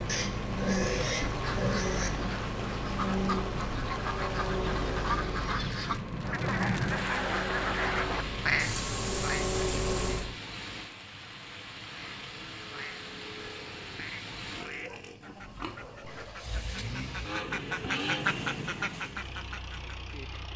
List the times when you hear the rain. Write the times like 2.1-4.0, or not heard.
0.2-14.7.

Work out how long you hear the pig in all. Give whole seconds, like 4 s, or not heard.
6 s.